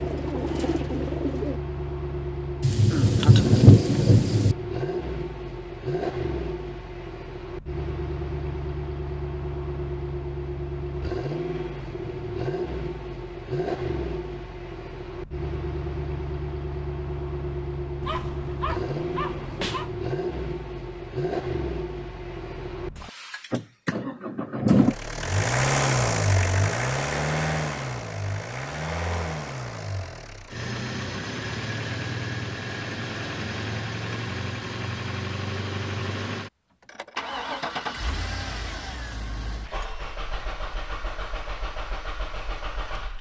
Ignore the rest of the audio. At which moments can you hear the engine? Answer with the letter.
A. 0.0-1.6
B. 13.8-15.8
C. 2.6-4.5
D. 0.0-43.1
D.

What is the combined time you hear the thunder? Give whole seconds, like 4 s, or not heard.
2 s.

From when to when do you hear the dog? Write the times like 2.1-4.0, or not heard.
18.0-19.9.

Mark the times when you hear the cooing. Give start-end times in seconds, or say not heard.
0.0-1.6.